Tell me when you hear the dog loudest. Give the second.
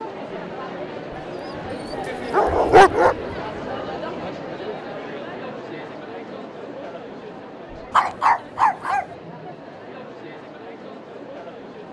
3 s.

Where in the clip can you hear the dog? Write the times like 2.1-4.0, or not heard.
2.3-3.4, 7.9-9.1.